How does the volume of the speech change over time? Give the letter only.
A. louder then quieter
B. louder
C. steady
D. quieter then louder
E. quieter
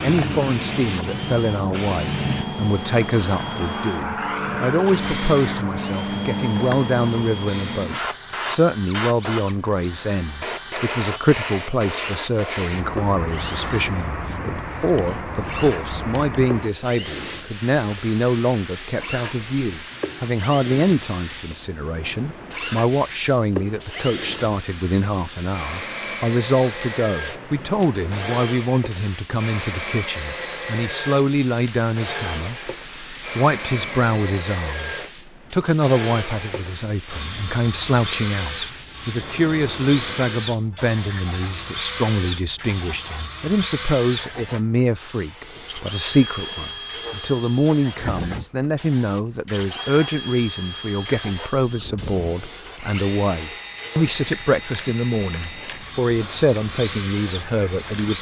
C.